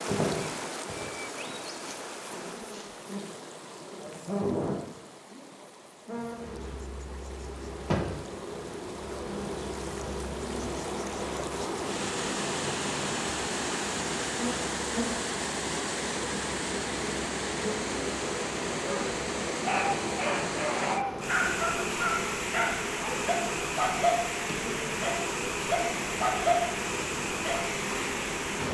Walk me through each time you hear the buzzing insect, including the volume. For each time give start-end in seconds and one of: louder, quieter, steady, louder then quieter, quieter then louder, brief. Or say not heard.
0.0-28.6 steady.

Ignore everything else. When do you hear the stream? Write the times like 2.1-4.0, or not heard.
0.0-28.6.